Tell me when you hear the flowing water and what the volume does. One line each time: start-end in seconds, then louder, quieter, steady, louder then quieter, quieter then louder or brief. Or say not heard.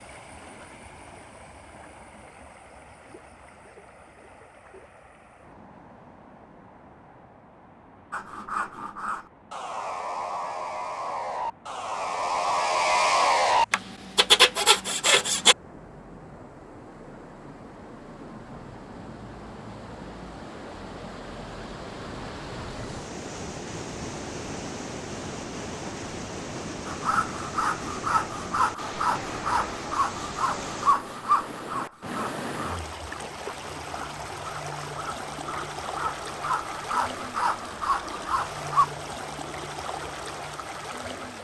0.0-41.3 louder.